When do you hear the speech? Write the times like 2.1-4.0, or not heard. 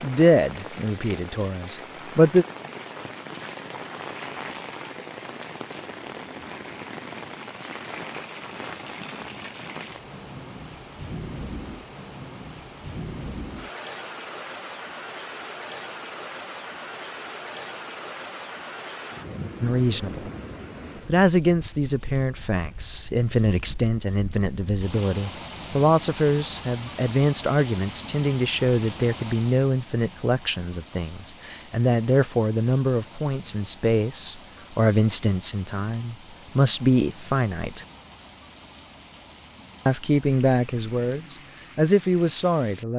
0.0-2.5, 19.6-20.3, 21.1-37.9, 39.9-42.9.